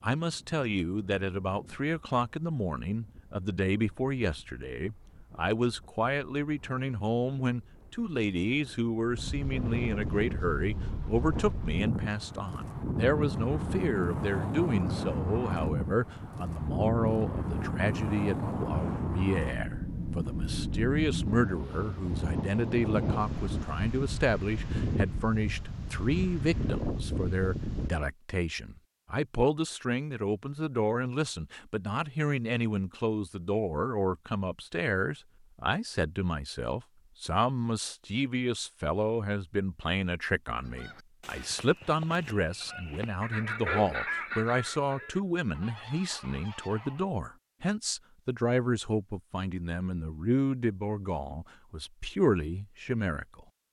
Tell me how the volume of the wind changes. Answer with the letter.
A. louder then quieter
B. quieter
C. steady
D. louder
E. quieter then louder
D.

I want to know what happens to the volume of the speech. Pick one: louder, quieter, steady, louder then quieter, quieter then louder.
steady.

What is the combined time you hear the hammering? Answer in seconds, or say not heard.
not heard.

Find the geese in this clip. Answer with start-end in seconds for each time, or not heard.
40.6-47.1.